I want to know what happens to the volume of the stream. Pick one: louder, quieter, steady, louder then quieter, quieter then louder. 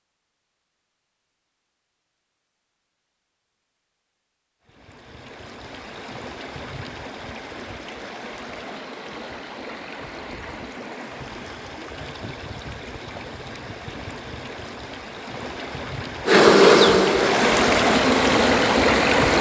louder.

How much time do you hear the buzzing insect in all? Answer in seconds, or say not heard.
3 s.